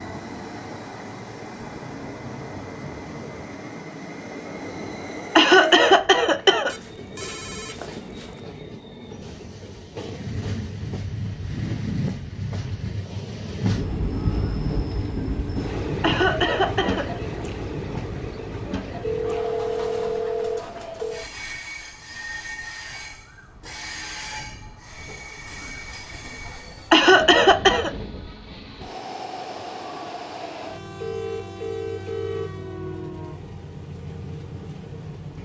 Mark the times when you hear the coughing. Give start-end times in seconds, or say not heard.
5.3-6.8, 16.0-17.1, 26.9-27.9.